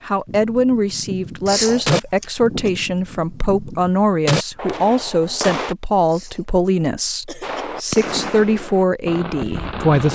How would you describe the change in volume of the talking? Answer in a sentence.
The volume of the talking stays about the same.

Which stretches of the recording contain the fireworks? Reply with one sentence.
The fireworks can be heard from 0.2 to 5.8 s and from 7.4 to 10.1 s.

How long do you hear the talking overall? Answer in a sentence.
The talking can be heard for 10 seconds in total.